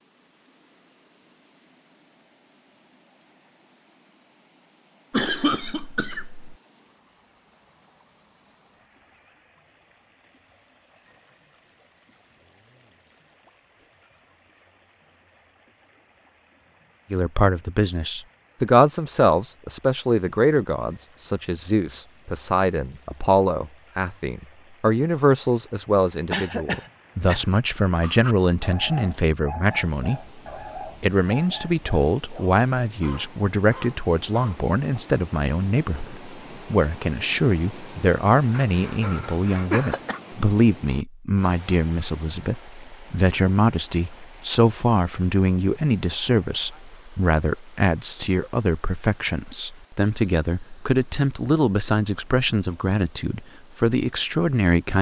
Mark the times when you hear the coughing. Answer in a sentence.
You can hear the coughing from 5.1 to 6.5 s, from 26.3 to 27.4 s and from 38.5 to 40.2 s.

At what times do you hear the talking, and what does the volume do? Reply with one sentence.
You can hear the talking from 17.1 to 54.9 s, at a steady volume.